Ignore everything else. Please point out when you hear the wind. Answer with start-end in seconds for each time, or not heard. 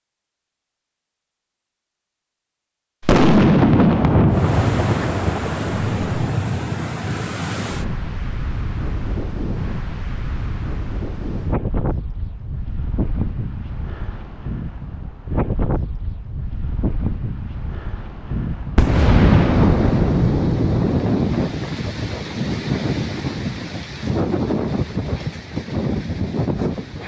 4.3-27.0.